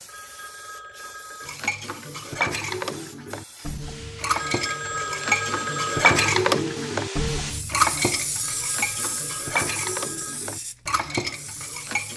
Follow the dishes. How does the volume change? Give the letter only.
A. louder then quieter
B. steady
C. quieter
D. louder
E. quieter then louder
A.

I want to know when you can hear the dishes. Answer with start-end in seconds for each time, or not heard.
1.4-12.1.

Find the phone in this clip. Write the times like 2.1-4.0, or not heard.
0.1-1.6, 4.3-6.3, 8.3-10.4.